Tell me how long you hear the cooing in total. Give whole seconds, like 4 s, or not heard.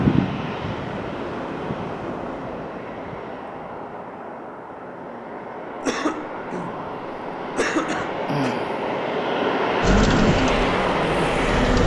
2 s.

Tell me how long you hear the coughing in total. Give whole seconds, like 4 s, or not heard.
2 s.